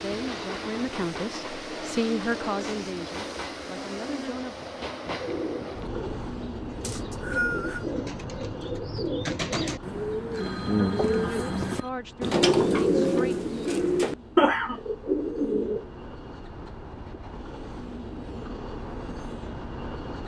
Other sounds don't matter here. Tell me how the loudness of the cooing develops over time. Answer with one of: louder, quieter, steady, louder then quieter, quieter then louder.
louder.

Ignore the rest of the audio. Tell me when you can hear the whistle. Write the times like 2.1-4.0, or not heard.
6.8-7.8.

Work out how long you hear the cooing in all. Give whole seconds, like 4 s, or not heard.
11 s.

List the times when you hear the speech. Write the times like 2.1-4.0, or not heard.
0.0-4.5, 10.8-13.4.